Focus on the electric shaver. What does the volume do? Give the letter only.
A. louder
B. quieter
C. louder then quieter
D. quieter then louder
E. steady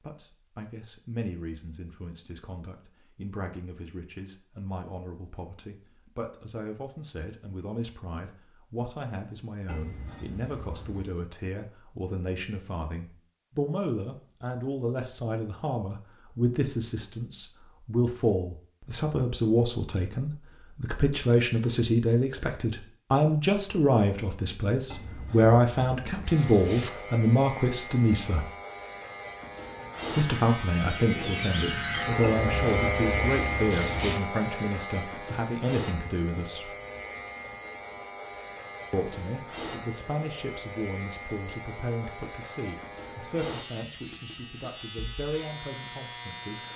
C.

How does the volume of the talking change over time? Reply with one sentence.
The loudness of the talking goes up, then down.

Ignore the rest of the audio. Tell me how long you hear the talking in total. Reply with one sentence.
The talking can be heard for 43 seconds in total.